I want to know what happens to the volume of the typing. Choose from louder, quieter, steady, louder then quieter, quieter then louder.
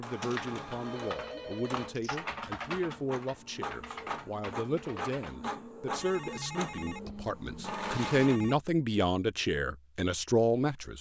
louder then quieter.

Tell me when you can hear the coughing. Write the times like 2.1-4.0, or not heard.
not heard.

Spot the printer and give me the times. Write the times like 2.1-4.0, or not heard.
0.0-8.4.